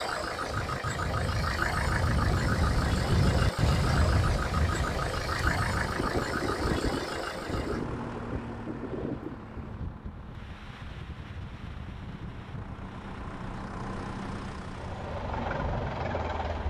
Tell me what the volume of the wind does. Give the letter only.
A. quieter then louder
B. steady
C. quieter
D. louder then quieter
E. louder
C.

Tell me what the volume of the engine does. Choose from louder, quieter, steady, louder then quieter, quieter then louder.
quieter then louder.